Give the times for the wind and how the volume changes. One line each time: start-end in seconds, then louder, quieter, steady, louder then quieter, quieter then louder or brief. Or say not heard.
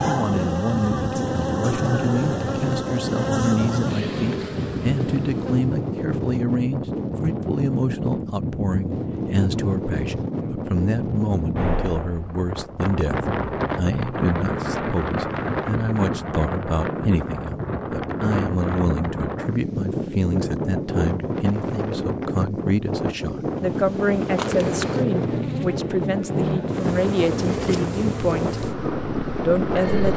0.0-30.1 steady.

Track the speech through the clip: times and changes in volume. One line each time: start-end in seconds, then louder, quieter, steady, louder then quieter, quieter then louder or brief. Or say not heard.
0.1-28.6 steady
29.4-30.1 brief.